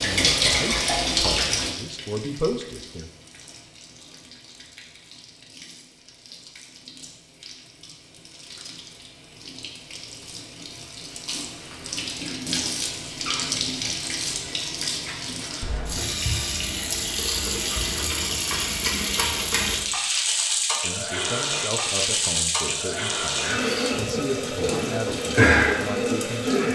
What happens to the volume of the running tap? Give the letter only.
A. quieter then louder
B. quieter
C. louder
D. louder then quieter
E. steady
A.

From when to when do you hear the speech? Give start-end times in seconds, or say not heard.
0.0-3.1, 20.8-26.7.